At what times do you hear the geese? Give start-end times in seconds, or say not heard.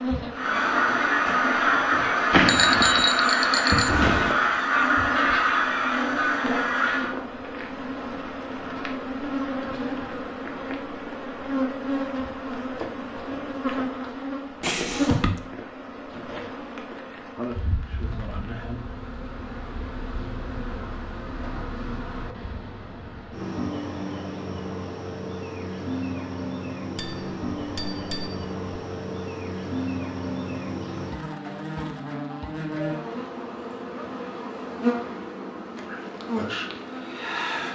0.3-7.2.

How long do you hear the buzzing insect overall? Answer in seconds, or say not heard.
38 s.